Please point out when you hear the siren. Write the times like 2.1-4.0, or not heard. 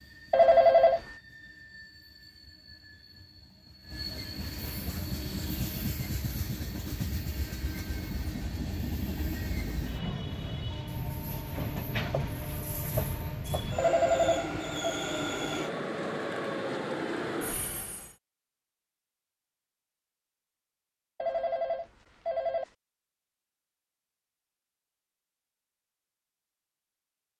not heard.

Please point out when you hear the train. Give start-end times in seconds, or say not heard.
0.0-18.1.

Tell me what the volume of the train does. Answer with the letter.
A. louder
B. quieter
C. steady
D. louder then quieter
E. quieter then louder
A.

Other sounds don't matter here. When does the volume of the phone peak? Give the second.
1 s.